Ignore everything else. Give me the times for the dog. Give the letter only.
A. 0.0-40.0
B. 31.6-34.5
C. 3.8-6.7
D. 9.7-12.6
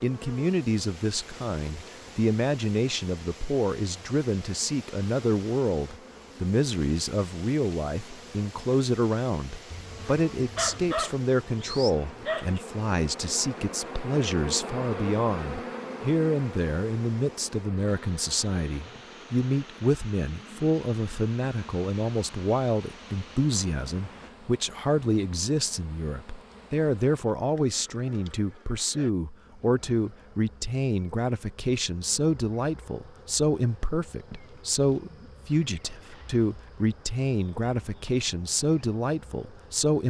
D.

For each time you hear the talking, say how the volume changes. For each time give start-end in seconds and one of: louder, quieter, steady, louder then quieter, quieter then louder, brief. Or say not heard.
0.0-40.0 steady.